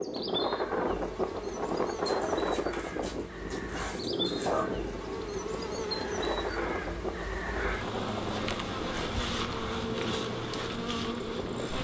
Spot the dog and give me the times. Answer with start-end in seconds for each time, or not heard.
2.0-4.7.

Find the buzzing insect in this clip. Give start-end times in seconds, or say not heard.
0.0-11.7.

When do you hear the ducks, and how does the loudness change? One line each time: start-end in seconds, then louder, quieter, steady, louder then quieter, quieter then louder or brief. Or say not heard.
not heard.